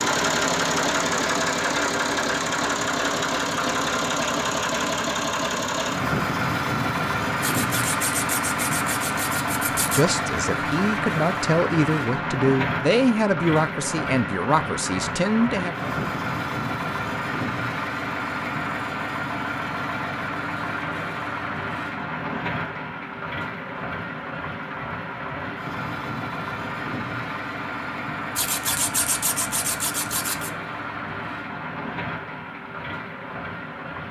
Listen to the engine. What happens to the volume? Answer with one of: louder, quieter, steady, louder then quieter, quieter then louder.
quieter.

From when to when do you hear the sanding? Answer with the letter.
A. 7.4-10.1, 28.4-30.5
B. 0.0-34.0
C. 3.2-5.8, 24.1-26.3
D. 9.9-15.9
A.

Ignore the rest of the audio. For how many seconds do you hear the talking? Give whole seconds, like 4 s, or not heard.
6 s.